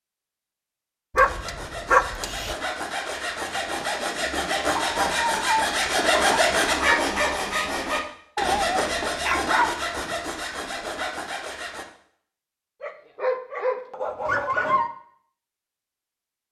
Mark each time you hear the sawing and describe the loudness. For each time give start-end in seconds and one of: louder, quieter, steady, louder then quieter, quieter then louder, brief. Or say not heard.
1.1-11.8 louder then quieter.